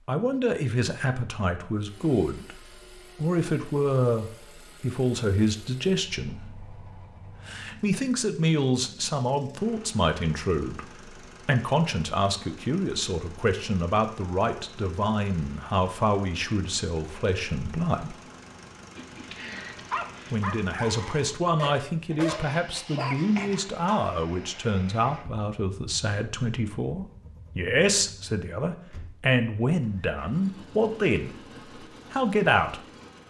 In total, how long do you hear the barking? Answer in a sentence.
The barking can be heard for 5 seconds in total.